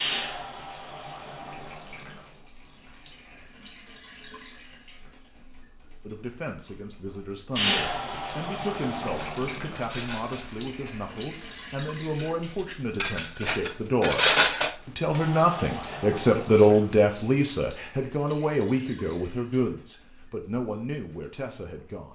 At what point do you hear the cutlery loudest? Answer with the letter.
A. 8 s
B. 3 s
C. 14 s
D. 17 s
C.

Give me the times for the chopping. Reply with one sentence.
The chopping can't be heard in this clip.